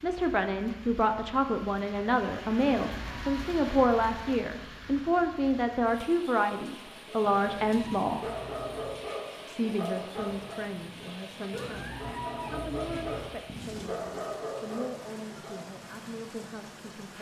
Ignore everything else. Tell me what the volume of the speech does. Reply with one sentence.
The loudness of the speech goes down.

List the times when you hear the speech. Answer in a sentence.
You can hear the speech from 0.0 to 8.2 s and from 9.4 to 17.1 s.